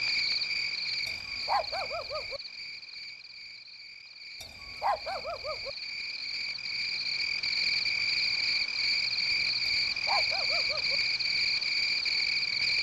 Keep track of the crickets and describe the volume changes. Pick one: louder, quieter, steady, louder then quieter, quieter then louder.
quieter then louder.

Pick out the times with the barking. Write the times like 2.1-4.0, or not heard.
1.1-2.4, 4.4-5.7, 9.7-10.9.